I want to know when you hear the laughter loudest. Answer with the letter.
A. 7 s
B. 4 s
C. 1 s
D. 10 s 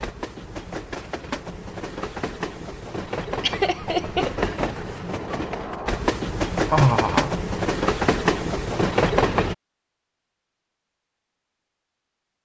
A.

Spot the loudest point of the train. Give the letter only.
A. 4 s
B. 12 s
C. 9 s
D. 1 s
C.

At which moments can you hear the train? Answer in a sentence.
You can hear the train from 0.0 to 9.6 s.